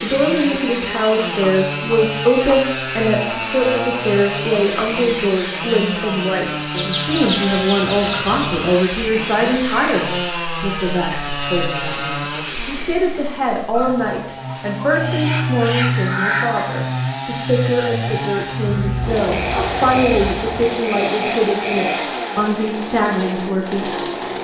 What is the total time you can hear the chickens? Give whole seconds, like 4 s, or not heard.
8 s.